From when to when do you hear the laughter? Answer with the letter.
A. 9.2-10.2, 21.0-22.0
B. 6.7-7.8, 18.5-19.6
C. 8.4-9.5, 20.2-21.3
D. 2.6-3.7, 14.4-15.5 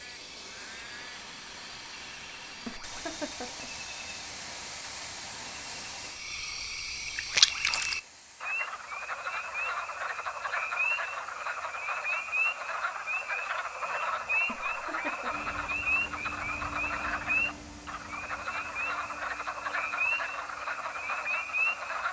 D.